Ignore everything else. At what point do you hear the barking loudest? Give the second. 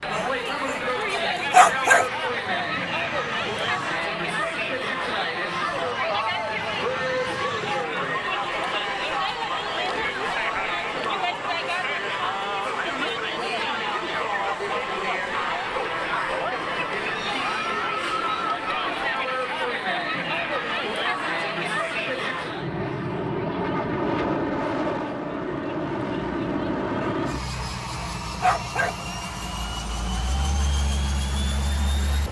2 s.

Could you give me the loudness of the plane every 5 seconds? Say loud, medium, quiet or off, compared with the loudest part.
quiet, quiet, quiet, quiet, loud, loud, loud.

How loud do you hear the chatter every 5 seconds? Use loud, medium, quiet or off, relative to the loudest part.
loud, loud, loud, loud, loud, quiet, quiet.